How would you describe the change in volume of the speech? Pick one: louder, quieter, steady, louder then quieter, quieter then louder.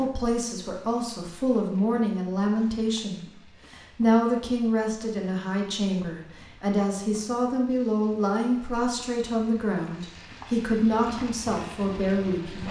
steady.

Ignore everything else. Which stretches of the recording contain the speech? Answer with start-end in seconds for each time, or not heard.
0.0-12.6.